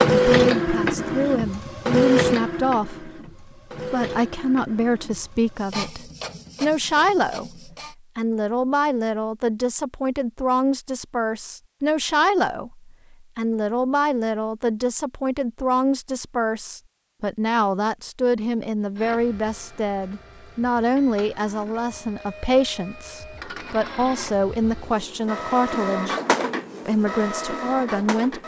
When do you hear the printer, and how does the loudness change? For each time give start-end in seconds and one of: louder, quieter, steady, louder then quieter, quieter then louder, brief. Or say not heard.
0.0-8.0 quieter
18.9-28.4 louder.